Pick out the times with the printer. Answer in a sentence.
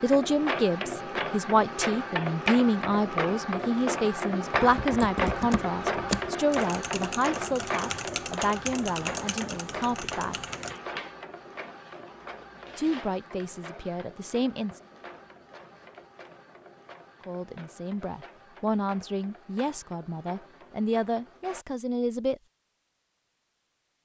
The printer can be heard from 0.0 to 21.6 s.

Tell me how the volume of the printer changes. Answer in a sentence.
The volume of the printer goes down.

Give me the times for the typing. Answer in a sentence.
The typing can be heard from 4.5 to 10.8 s.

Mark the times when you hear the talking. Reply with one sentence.
You can hear the talking from 0.0 to 10.4 s, from 12.8 to 14.8 s and from 17.2 to 22.4 s.